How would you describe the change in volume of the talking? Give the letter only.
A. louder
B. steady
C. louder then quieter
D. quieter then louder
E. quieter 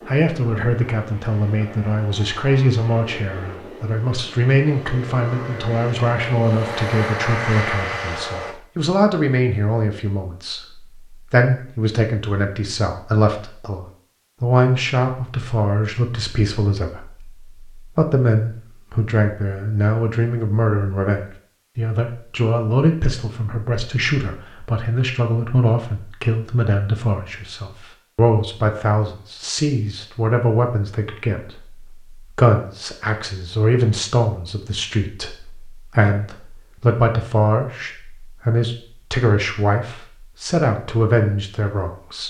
B.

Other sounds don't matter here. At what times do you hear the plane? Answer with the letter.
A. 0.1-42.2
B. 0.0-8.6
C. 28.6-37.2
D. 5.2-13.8
B.